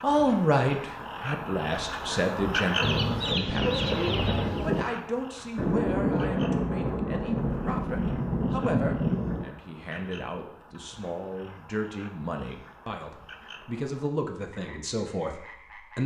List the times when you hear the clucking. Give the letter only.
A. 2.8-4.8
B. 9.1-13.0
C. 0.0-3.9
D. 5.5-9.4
A.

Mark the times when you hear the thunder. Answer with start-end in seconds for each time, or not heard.
5.5-9.4.